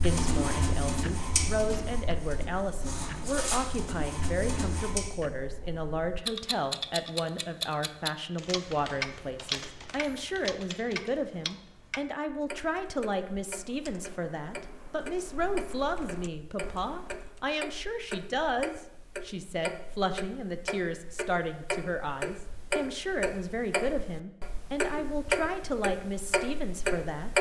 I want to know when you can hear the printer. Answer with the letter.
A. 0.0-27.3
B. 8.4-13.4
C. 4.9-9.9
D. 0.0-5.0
D.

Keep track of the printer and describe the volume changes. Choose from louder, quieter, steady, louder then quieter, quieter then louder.
quieter then louder.